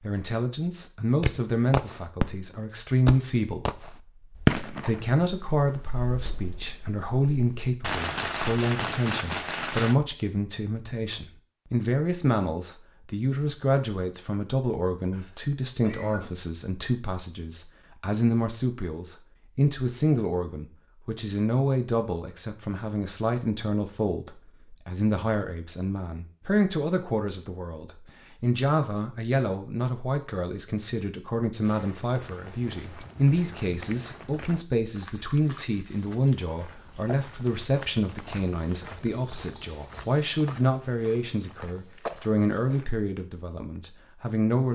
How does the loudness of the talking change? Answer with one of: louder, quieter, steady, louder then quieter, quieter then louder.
steady.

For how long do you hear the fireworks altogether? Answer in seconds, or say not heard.
9 s.